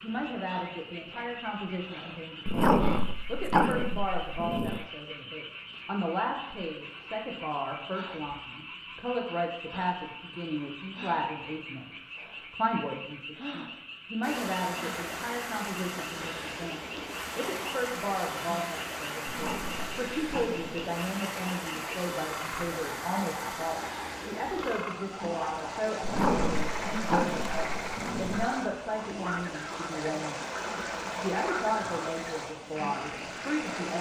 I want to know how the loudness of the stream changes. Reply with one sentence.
The loudness of the stream stays about the same.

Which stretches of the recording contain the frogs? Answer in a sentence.
You can hear the frogs from 0.0 to 33.9 s.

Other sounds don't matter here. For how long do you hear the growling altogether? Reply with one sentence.
The growling can be heard for 6 seconds in total.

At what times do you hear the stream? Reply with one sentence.
You can hear the stream from 14.2 to 33.9 s.